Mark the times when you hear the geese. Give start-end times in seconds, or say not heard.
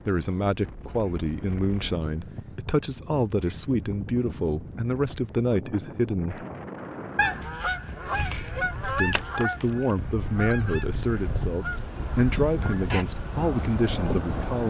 7.2-13.1.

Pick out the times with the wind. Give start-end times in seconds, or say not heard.
0.0-14.6.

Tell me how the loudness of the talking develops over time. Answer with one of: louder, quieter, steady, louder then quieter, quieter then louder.
steady.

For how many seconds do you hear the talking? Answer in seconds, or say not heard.
12 s.